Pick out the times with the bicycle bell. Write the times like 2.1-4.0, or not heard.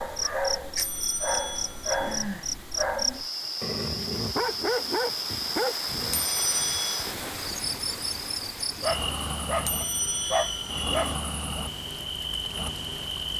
0.8-2.2, 6.1-7.1, 9.7-11.2.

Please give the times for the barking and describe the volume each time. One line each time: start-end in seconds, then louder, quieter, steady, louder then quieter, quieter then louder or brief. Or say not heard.
0.0-6.2 steady
8.8-11.2 brief.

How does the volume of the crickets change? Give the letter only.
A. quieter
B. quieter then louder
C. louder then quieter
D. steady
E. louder
D.